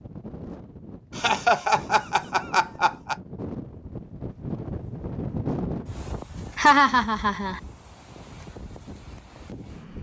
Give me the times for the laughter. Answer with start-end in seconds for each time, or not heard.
1.1-3.1, 6.5-7.6.